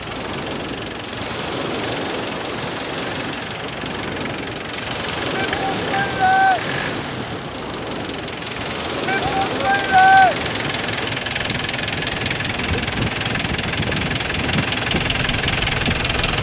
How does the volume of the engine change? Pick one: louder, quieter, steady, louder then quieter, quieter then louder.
louder.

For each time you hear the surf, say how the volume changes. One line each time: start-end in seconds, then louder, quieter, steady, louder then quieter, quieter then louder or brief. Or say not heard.
0.0-16.3 steady.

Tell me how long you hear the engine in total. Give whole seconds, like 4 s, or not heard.
16 s.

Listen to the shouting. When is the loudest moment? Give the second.
10 s.